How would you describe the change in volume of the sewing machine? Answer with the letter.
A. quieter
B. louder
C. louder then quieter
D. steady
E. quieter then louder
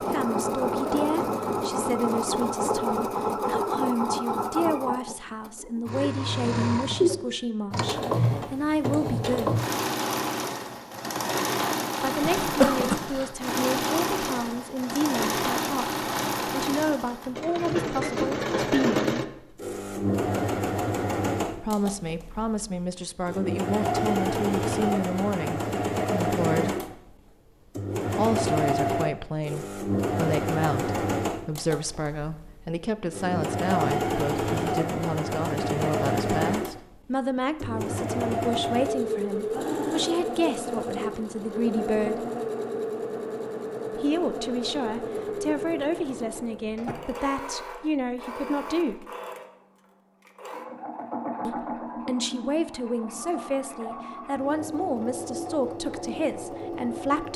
A.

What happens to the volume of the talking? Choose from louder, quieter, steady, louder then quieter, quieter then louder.
steady.